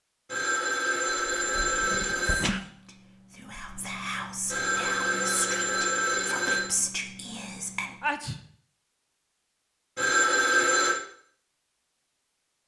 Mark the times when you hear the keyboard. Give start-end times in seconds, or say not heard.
not heard.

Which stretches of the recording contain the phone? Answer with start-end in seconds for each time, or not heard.
0.2-2.5, 4.5-6.7, 9.9-11.0.